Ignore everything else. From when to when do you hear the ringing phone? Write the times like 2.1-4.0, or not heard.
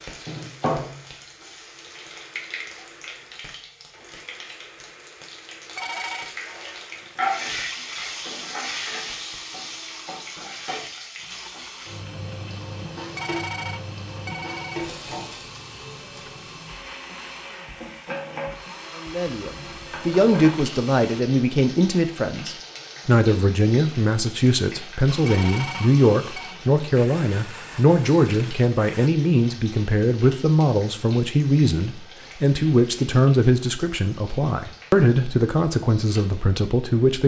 5.8-6.3, 13.2-14.9, 25.2-26.6.